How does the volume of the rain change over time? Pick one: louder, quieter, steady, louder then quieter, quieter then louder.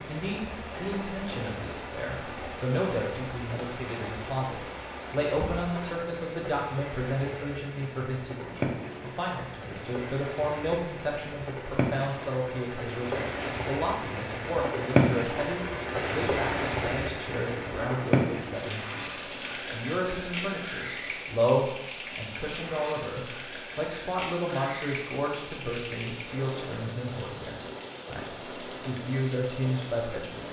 louder then quieter.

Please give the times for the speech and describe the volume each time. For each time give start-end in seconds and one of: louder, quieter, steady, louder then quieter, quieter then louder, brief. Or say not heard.
0.1-30.4 steady.